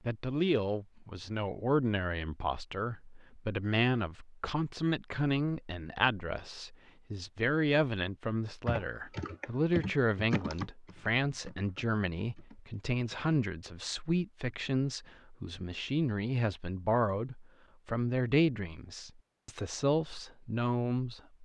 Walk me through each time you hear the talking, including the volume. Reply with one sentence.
You can hear the talking from 0.1 to 21.2 s, at a steady volume.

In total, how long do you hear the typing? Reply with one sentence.
The typing can be heard for 5 seconds in total.